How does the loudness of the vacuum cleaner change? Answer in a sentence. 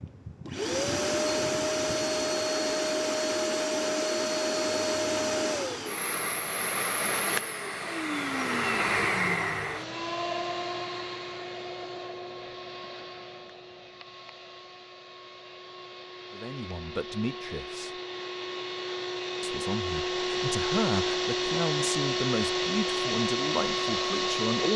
The loudness of the vacuum cleaner goes down, then up.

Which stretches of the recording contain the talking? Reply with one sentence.
The talking can be heard from 16.3 to 17.9 s and from 19.4 to 24.7 s.